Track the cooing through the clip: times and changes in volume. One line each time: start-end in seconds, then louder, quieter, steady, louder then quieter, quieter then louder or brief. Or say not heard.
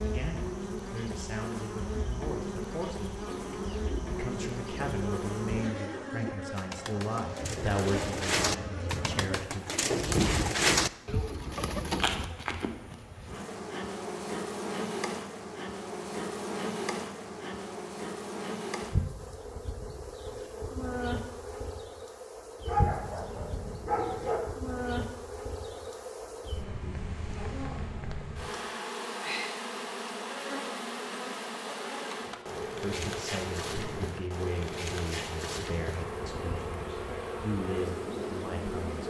3.1-12.3 louder.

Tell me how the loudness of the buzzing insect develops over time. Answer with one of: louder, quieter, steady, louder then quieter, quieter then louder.
steady.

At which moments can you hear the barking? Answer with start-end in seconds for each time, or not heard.
22.6-24.4.